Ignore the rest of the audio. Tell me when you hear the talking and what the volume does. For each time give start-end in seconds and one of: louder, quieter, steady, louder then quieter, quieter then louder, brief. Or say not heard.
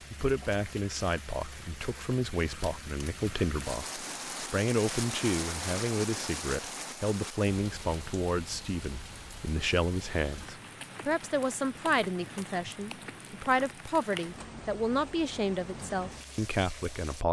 0.1-17.2 steady.